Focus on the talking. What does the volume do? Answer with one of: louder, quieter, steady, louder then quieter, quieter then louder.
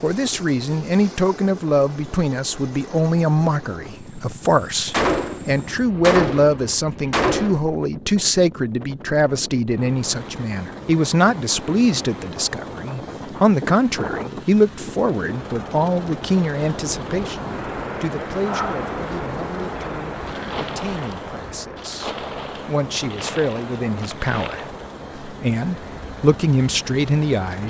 quieter then louder.